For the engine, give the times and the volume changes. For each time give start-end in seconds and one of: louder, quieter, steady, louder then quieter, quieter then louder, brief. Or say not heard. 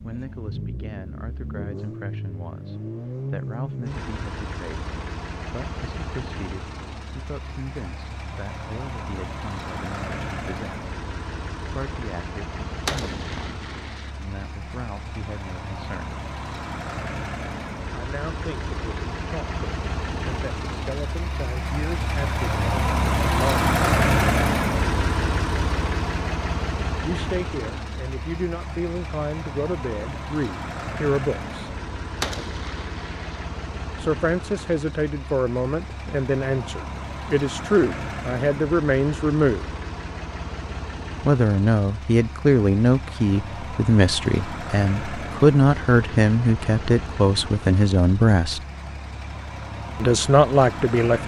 0.0-51.2 louder then quieter.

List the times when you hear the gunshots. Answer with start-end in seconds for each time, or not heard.
12.8-14.1, 32.2-33.5.